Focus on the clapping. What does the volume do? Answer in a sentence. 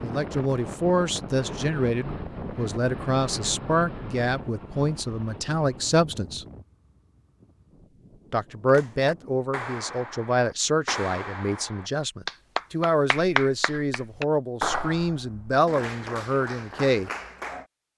The loudness of the clapping goes up, then down.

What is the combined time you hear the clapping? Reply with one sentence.
You can hear the clapping for 9 seconds altogether.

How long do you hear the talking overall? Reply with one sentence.
You can hear the talking for 15 seconds altogether.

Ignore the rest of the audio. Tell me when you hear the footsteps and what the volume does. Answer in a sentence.
You can't hear the footsteps here.